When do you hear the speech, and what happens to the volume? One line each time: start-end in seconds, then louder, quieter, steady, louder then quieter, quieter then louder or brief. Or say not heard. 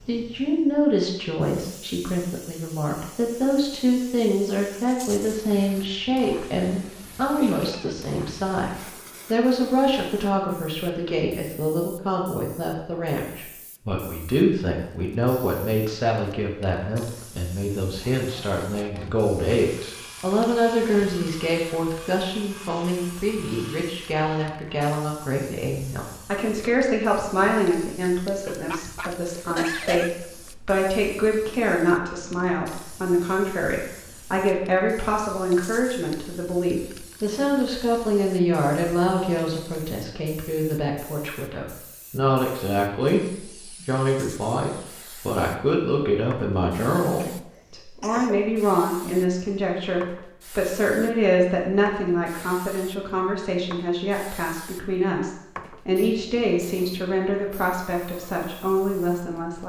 0.1-59.6 steady.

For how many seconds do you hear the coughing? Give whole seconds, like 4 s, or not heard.
4 s.